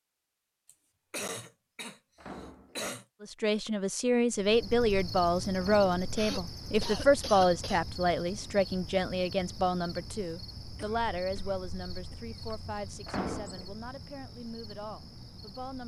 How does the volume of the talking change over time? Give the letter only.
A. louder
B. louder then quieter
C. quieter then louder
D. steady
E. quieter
E.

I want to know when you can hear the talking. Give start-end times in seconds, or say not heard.
3.2-15.8.